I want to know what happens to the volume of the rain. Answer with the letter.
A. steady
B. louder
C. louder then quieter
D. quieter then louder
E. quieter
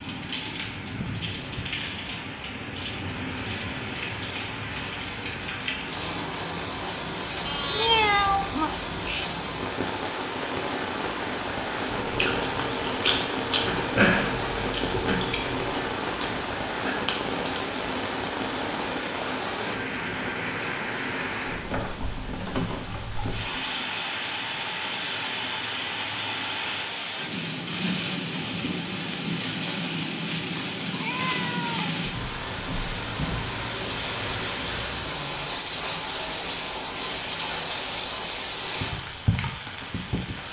A.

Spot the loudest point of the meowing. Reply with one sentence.
The volume of the meowing peaks at 8 seconds.